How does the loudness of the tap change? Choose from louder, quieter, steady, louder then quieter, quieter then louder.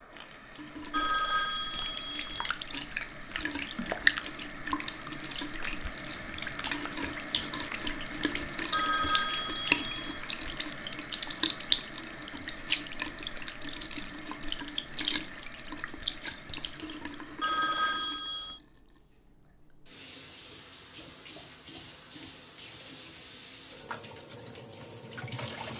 quieter.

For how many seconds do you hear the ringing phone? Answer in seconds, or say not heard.
4 s.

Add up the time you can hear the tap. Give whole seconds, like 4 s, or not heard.
26 s.